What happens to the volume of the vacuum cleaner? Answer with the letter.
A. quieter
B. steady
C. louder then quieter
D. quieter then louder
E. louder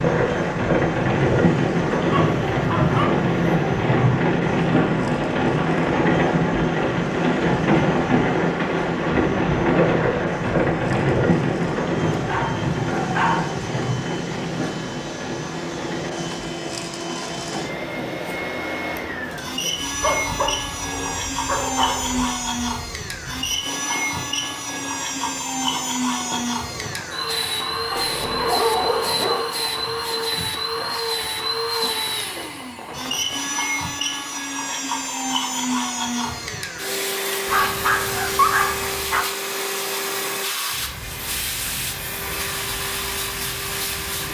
E.